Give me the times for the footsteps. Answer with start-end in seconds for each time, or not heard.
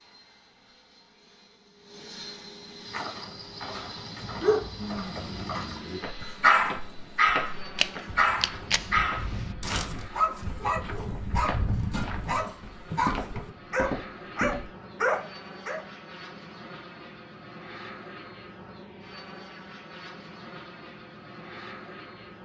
2.9-14.8.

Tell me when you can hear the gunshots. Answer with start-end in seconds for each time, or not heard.
7.8-9.5.